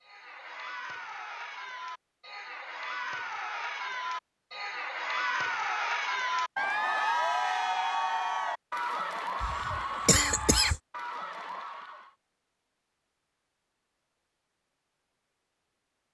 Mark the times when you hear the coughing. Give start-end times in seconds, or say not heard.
9.4-10.8.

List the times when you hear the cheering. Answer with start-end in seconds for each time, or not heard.
0.0-12.2.